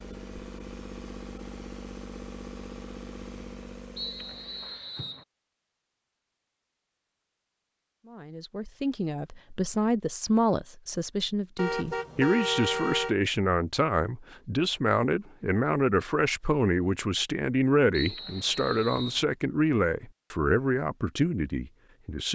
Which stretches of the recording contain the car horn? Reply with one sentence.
You can hear the car horn from 11.6 to 13.2 s.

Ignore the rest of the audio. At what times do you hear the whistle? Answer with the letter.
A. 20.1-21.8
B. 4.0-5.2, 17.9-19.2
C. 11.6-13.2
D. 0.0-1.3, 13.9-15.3
B.